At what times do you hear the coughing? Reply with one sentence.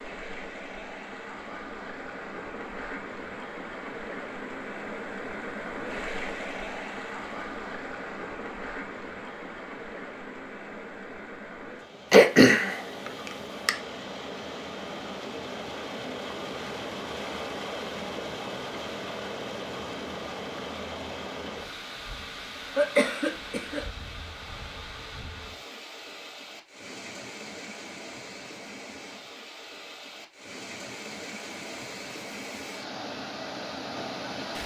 You can hear the coughing from 12.1 to 13.7 s and from 22.8 to 23.9 s.